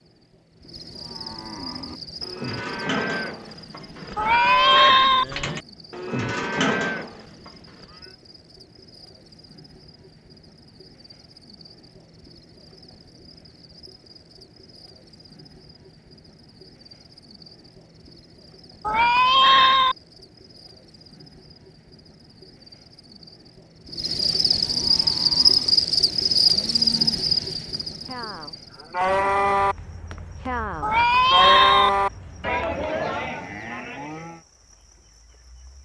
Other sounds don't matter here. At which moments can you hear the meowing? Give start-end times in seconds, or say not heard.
4.2-5.2, 18.9-19.9, 30.8-31.9.